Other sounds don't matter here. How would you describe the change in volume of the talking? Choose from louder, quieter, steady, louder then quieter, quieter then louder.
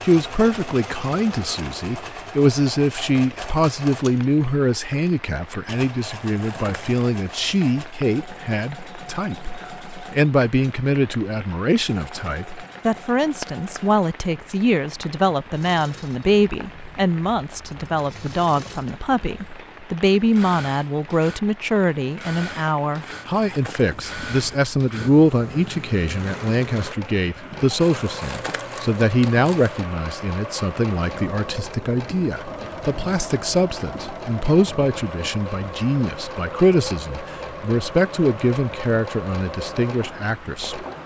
steady.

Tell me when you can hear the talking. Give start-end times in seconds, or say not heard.
0.0-40.9.